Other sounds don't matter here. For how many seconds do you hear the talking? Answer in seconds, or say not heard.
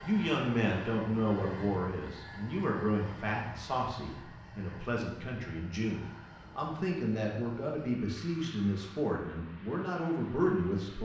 11 s.